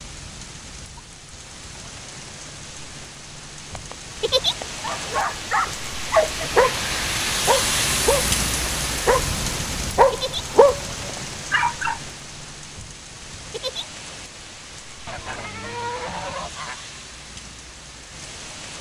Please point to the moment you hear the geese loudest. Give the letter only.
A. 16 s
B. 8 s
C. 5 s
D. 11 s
A.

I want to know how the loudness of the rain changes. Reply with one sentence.
The loudness of the rain goes up, then down.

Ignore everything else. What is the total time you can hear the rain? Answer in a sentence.
The rain can be heard for 19 seconds in total.